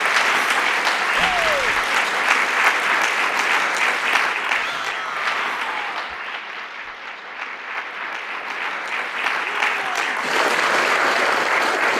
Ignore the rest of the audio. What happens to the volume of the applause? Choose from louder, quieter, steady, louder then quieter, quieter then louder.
quieter then louder.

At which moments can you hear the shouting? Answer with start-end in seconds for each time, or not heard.
1.1-1.8, 4.5-6.2, 9.4-10.1.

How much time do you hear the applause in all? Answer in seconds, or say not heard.
12 s.